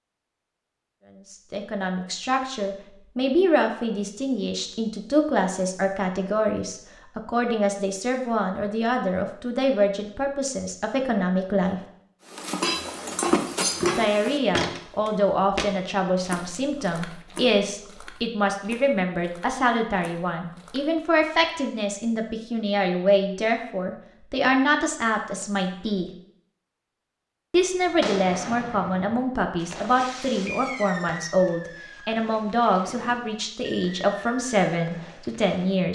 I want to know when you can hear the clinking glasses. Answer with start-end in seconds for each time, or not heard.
12.6-14.1.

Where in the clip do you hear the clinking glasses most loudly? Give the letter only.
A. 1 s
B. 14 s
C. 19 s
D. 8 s
B.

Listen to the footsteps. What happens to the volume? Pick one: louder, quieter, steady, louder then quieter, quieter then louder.
quieter.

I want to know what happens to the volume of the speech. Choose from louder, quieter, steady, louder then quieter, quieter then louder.
steady.